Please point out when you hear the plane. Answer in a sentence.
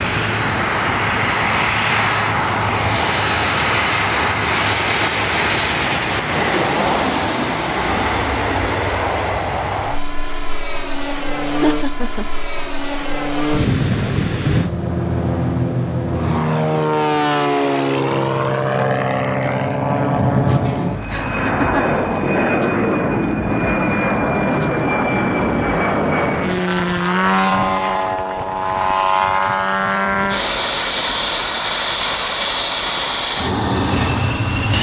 The plane can be heard from 0.0 to 34.7 s.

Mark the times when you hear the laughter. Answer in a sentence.
The laughter can be heard from 11.4 to 12.3 s and from 20.4 to 22.0 s.